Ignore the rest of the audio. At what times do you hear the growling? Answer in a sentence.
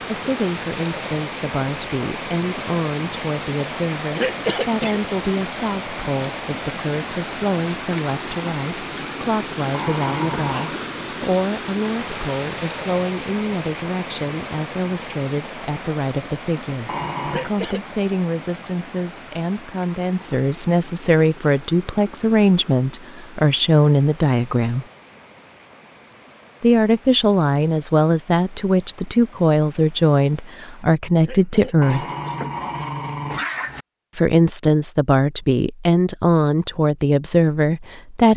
You can hear the growling from 9.7 to 10.8 s, from 16.9 to 17.5 s and from 31.8 to 33.9 s.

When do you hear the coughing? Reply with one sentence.
You can hear the coughing from 4.1 to 5.0 s, from 17.2 to 17.8 s and from 31.1 to 33.0 s.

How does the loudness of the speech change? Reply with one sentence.
The volume of the speech goes up.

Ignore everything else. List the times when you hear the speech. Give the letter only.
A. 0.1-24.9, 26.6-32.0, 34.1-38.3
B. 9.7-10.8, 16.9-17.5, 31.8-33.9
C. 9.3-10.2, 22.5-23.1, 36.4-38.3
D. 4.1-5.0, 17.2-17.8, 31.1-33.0
A.